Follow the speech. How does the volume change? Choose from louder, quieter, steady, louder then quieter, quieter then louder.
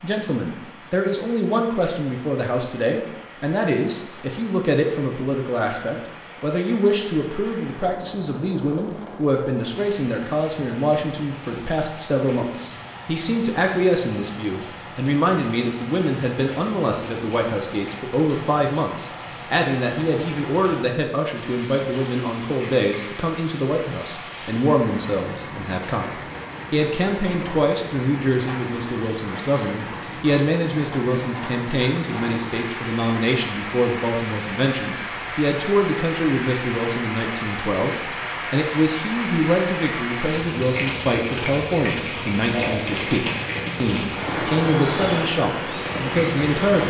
steady.